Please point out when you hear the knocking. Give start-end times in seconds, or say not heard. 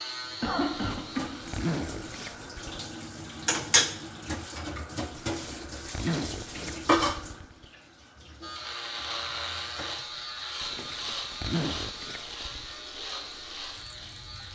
not heard.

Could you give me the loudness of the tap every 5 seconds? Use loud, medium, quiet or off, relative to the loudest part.
loud, loud, quiet.